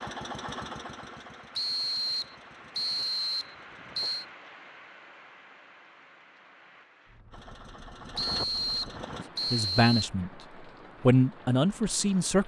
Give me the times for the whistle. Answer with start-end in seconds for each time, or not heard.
1.6-4.2, 8.2-10.1.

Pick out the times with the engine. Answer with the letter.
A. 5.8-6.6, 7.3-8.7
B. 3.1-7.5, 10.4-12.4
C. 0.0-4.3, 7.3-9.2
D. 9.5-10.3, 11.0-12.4
C.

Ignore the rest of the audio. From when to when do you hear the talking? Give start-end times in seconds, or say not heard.
9.5-10.3, 11.0-12.4.